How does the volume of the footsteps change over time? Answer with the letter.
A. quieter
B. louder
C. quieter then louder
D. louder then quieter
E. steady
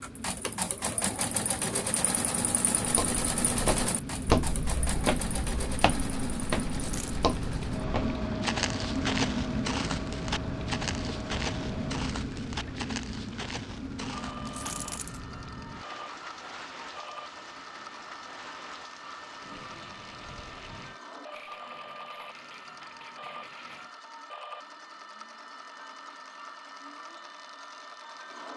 A.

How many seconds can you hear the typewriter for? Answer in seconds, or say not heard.
not heard.